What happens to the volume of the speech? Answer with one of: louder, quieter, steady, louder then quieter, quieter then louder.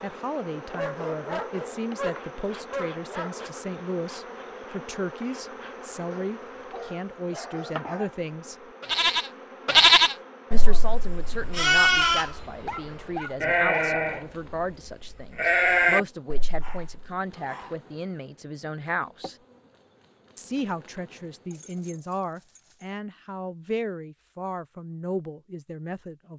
steady.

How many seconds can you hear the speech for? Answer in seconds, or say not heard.
23 s.